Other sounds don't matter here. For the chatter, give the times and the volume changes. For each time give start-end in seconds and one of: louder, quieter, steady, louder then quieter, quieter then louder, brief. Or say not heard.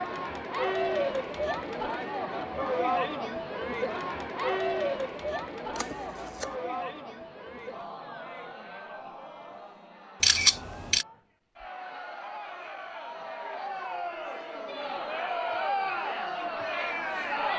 0.0-17.5 quieter then louder.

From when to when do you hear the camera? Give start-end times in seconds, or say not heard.
5.7-6.5, 10.2-11.1.